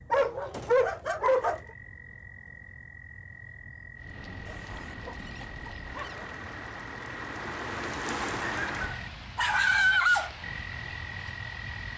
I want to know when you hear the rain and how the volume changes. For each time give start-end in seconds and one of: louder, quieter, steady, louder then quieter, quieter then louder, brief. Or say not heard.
4.0-11.9 louder then quieter.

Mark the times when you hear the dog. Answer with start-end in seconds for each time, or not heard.
0.1-1.6, 4.5-6.3, 8.6-10.3.